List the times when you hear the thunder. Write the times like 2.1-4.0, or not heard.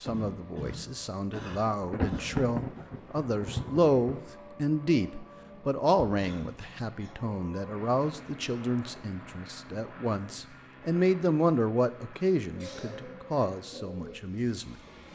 1.8-4.3.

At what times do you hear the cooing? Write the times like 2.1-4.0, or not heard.
12.5-15.1.